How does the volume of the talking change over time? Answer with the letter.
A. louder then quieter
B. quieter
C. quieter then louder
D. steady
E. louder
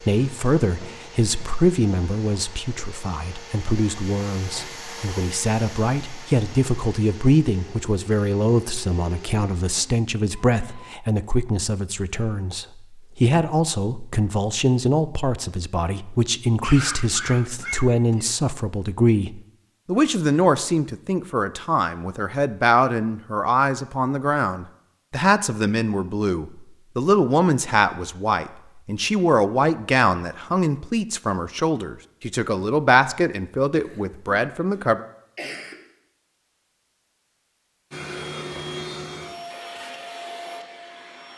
D.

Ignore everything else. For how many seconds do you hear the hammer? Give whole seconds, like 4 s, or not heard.
not heard.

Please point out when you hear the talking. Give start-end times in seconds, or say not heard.
0.0-35.0.